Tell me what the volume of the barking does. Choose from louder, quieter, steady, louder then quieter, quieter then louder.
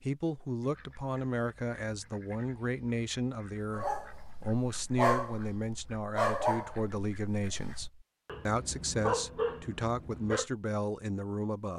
quieter then louder.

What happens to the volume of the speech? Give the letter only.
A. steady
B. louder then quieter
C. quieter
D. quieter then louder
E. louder
A.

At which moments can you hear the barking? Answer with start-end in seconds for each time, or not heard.
3.8-10.4.